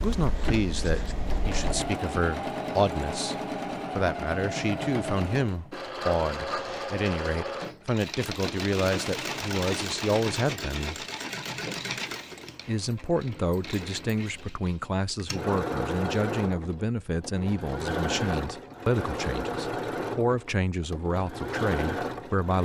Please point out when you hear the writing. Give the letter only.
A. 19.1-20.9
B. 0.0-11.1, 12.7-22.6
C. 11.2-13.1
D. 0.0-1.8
D.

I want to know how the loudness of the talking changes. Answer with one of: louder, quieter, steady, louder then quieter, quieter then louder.
steady.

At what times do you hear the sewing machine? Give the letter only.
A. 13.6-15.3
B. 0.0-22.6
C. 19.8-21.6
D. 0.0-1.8
B.